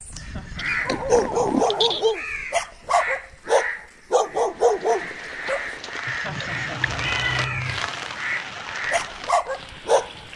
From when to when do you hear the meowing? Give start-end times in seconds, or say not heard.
0.6-2.1, 6.2-7.9.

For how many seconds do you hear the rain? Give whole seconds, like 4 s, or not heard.
6 s.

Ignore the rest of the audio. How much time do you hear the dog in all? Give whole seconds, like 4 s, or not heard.
7 s.